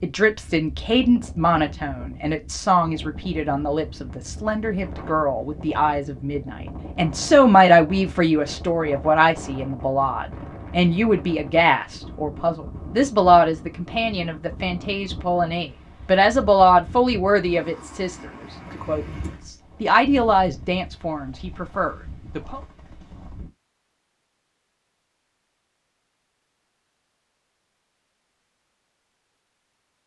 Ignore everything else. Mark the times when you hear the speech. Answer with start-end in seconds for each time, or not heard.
0.0-22.6.